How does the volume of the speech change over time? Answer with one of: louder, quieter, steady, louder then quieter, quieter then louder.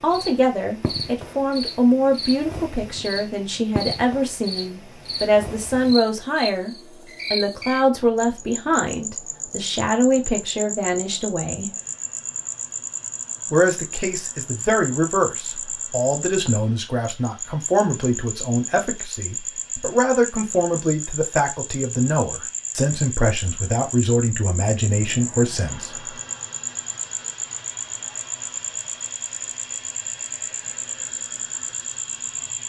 steady.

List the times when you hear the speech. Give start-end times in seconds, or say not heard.
0.0-11.7, 13.5-26.1.